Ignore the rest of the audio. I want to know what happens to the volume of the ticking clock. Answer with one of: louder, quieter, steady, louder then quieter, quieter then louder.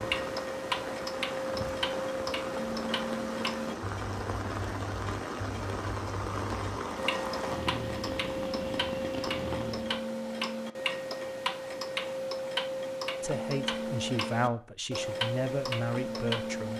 quieter then louder.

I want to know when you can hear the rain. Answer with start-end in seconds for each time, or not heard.
0.0-10.1.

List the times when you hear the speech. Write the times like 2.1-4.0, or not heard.
13.2-16.7.